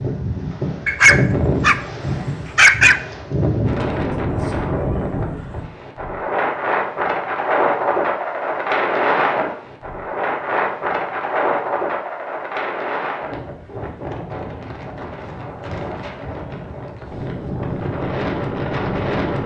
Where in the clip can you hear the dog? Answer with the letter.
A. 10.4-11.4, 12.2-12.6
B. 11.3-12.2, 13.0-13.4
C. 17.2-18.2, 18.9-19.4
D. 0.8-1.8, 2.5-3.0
D.